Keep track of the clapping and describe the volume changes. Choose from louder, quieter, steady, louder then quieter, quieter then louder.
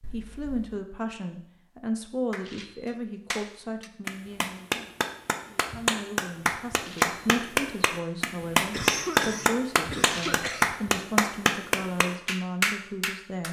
louder.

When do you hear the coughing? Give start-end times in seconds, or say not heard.
0.0-0.8, 8.7-10.7.